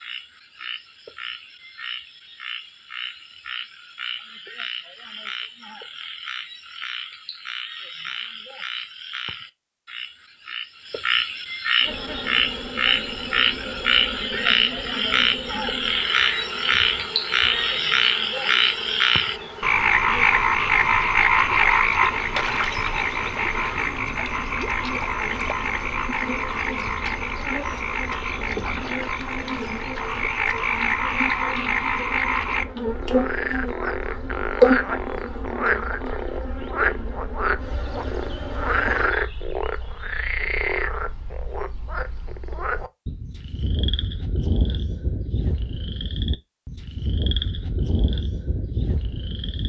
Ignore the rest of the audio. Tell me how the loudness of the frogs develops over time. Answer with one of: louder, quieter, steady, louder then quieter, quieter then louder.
louder then quieter.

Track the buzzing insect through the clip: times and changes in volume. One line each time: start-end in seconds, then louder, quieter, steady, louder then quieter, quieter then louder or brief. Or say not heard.
11.8-39.1 louder.